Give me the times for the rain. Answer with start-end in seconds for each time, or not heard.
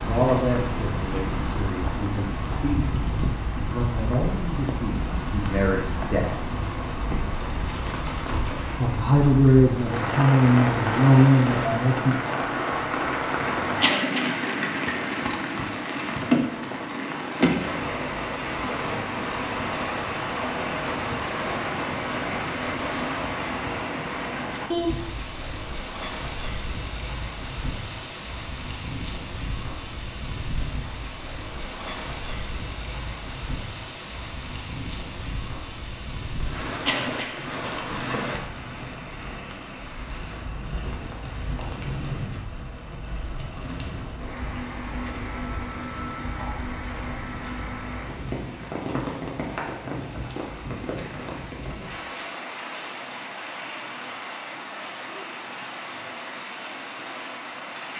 0.0-57.9.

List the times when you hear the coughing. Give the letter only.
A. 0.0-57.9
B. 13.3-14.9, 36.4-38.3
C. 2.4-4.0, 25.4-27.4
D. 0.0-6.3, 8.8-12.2
B.